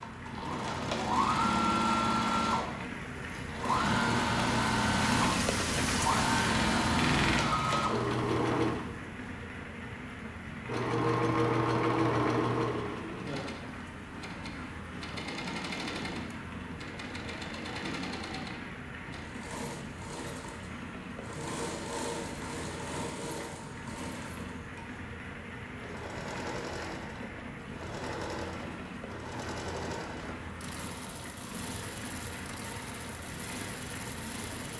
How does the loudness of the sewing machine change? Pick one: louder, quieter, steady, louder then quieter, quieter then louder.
quieter.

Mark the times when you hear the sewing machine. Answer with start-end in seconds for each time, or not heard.
0.0-34.7.